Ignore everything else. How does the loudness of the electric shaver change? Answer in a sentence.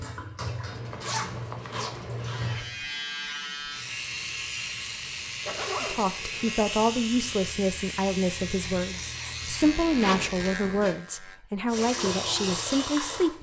The loudness of the electric shaver stays about the same.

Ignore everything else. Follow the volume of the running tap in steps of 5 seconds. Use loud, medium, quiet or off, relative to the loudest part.
medium, off, loud.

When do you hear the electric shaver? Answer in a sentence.
You can hear the electric shaver from 2.2 to 11.4 s.